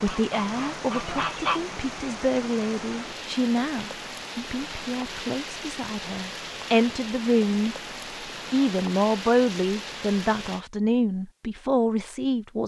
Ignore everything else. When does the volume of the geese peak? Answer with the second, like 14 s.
1 s.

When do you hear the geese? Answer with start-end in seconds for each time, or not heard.
0.0-1.6.